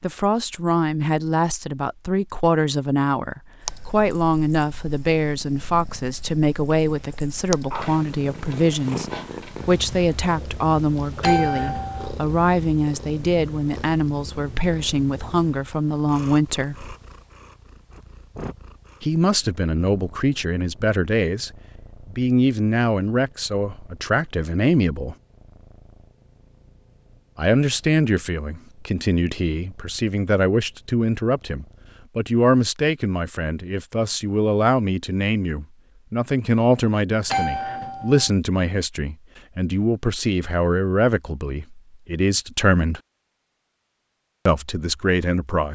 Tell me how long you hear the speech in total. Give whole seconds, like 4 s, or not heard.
40 s.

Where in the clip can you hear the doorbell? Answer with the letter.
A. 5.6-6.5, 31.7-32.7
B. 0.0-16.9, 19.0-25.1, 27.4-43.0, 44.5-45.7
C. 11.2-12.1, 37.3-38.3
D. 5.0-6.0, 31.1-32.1
C.